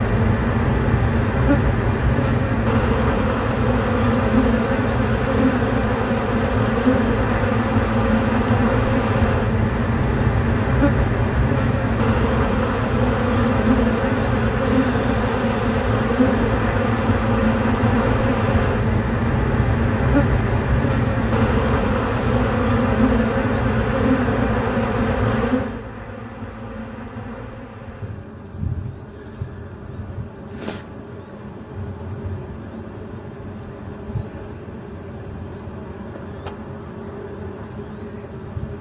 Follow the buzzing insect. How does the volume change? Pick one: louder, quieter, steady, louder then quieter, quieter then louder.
quieter.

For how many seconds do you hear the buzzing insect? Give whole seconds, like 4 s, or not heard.
39 s.